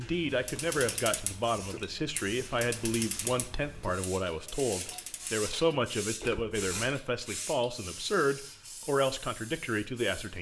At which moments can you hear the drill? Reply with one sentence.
You can't hear the drill here.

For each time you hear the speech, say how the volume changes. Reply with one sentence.
You can hear the speech from 0.0 to 10.3 s, at a steady volume.